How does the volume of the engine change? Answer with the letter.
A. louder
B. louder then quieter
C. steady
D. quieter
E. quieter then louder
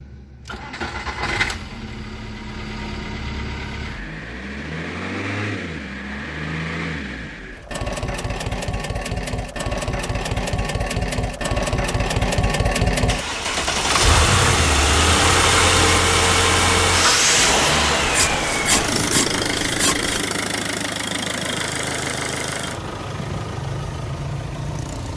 B.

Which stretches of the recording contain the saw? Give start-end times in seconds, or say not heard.
18.0-20.2.